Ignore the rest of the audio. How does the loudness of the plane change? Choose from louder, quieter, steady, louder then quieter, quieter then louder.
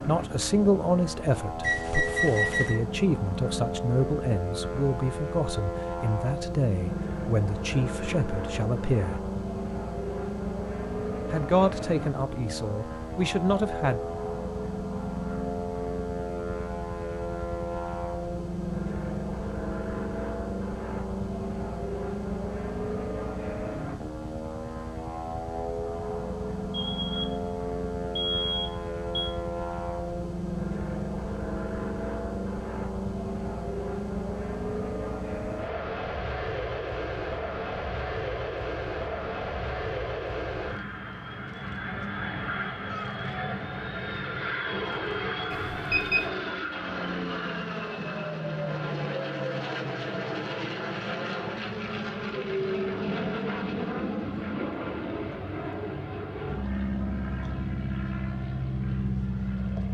steady.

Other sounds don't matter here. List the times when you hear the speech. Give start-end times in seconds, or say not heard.
0.1-9.2, 11.3-14.0.